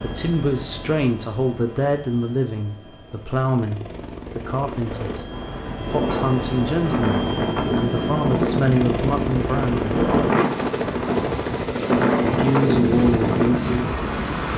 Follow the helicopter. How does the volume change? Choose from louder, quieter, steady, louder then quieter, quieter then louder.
louder.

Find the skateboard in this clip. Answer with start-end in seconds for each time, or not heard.
not heard.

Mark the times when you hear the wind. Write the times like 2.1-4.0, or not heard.
5.3-14.2.